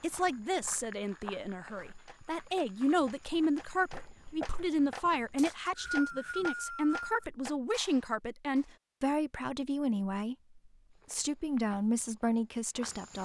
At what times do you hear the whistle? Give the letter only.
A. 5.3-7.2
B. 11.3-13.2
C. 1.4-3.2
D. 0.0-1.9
A.